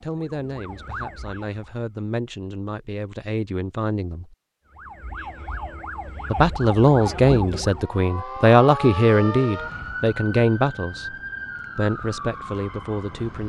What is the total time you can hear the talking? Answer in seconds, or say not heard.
11 s.